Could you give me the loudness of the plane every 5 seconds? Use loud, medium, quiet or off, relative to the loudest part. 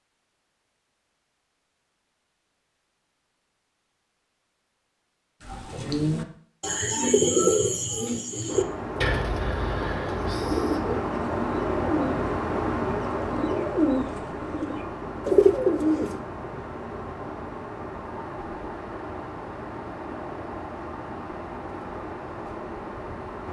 off, loud, loud, medium, medium.